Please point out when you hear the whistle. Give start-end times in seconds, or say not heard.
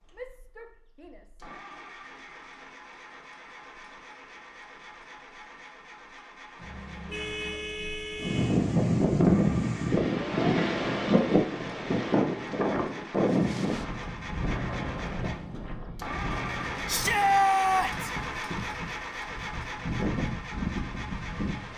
not heard.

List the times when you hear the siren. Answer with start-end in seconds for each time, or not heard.
not heard.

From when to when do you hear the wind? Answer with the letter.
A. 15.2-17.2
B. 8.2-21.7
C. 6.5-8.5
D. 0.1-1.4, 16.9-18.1
B.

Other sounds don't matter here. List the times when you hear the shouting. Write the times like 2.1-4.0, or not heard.
0.1-1.4, 16.9-18.1.